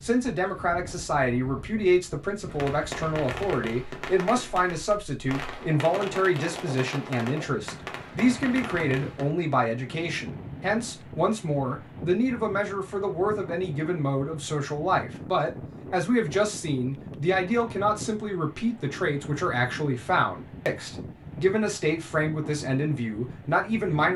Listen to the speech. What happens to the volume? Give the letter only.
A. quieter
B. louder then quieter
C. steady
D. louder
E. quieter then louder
C.